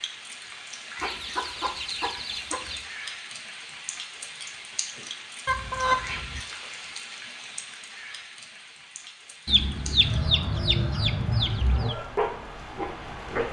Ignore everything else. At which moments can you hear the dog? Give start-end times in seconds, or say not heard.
10.0-13.4.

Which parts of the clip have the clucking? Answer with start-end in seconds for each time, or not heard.
0.9-2.9, 5.5-6.4, 9.4-11.9.